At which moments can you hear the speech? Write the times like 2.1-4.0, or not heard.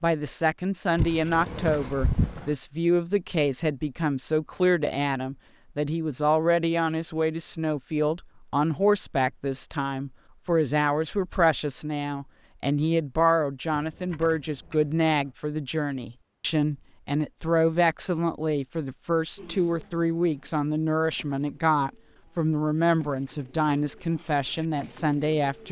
0.0-25.6.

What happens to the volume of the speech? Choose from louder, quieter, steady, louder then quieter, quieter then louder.
steady.